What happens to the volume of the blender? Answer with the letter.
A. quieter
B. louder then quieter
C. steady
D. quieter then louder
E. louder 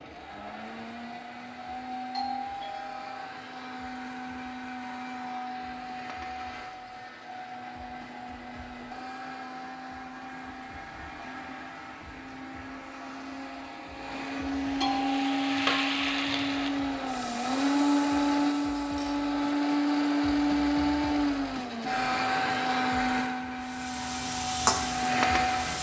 E.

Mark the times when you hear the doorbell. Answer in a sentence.
The doorbell can be heard from 2.1 to 3.2 s and from 14.8 to 15.7 s.